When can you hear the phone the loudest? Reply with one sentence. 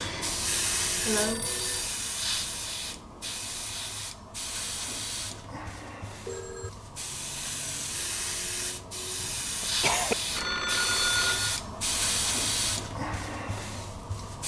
The loudest moment of the phone is at 11 seconds.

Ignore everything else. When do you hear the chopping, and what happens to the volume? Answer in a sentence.
You can't hear the chopping here.